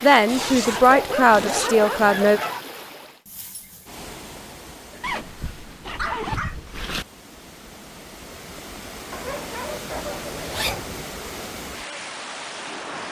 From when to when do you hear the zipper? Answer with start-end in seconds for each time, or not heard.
0.2-1.7, 5.0-7.0, 10.2-11.1.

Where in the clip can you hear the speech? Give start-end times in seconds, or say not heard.
0.0-2.4.